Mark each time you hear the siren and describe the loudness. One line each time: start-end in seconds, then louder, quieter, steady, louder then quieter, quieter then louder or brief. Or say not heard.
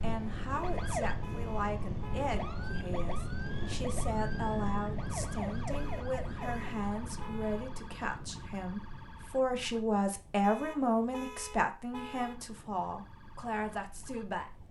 0.0-14.6 quieter.